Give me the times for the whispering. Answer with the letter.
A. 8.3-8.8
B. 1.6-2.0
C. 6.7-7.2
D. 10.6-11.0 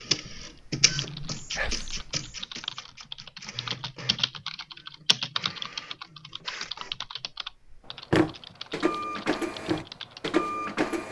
B.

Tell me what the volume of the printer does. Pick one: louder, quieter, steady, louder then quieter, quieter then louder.
quieter then louder.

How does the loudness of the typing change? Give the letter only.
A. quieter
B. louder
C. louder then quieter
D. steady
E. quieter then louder
C.